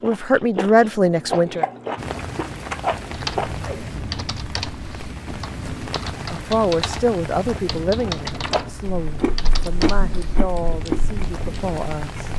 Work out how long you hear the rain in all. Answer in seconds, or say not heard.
10 s.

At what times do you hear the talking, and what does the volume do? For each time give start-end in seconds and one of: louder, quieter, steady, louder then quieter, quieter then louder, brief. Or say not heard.
0.0-1.6 brief
6.3-12.3 quieter.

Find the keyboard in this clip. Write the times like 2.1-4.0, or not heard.
3.1-11.8.